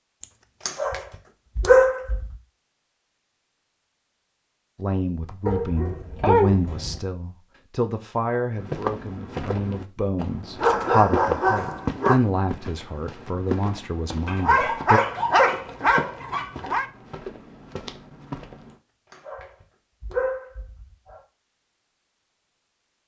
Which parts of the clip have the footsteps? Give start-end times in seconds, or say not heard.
8.6-18.8.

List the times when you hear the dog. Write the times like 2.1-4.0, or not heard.
0.2-2.4, 5.5-7.0, 10.6-12.2, 14.2-16.9, 18.7-21.2.